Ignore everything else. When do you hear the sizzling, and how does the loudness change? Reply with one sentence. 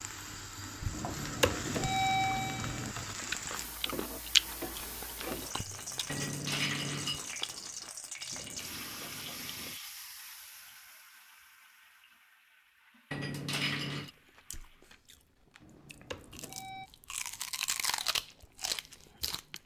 You can hear the sizzling from 0.0 to 14.9 s, getting quieter.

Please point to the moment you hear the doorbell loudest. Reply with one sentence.
The volume of the doorbell peaks at 2 seconds.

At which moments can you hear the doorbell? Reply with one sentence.
You can hear the doorbell from 0.9 to 3.0 s and from 15.6 to 16.9 s.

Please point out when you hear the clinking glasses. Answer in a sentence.
You can hear the clinking glasses from 6.0 to 7.2 s and from 13.1 to 14.1 s.